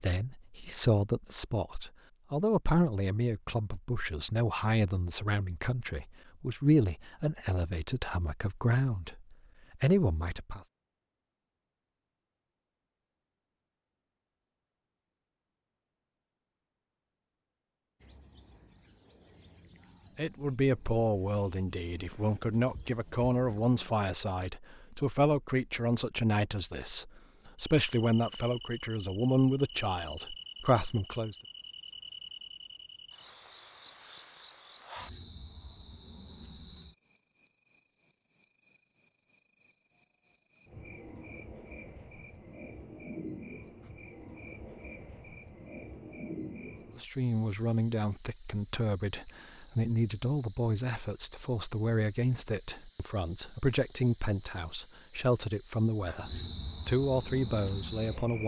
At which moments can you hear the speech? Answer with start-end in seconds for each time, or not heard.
0.0-10.6, 20.1-31.4, 47.0-58.4.